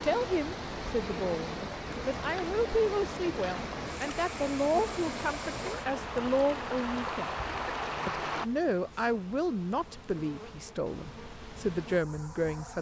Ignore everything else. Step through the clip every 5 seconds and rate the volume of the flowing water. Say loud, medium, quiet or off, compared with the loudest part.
loud, loud, off.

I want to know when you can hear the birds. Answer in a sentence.
The birds can't be heard in this clip.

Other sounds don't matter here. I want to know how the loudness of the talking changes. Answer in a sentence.
The loudness of the talking stays about the same.